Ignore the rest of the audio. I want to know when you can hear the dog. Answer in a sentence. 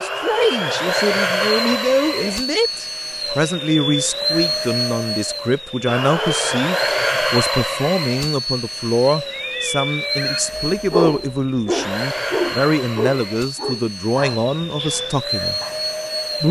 You can hear the dog from 10.6 to 15.9 s.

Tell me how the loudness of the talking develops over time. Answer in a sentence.
The loudness of the talking stays about the same.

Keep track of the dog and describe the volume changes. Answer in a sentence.
The volume of the dog goes down.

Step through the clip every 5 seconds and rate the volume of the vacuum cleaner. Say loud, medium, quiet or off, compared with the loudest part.
loud, loud, medium, loud.